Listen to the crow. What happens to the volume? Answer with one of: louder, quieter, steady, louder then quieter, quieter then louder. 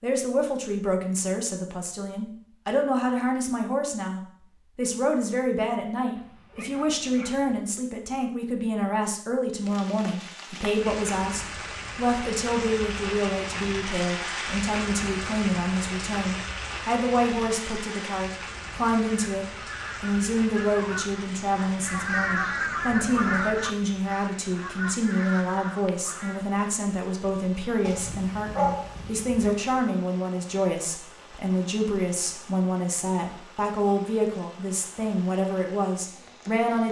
louder then quieter.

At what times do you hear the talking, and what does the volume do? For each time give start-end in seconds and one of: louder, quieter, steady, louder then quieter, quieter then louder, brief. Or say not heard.
0.0-36.8 steady.